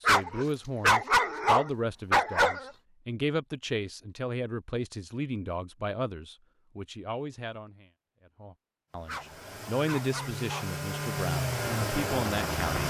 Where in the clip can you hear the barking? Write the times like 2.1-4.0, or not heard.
0.1-2.7, 9.1-10.7.